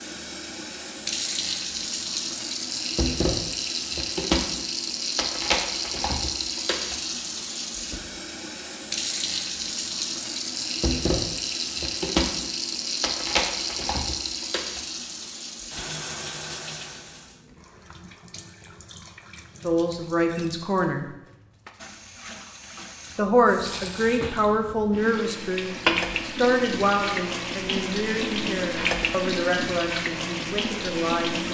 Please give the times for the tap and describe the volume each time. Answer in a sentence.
The tap can be heard from 0.0 to 31.4 s, getting quieter then louder.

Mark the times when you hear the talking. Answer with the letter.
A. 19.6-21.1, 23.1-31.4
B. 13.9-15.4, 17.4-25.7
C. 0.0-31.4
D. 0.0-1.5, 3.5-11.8
A.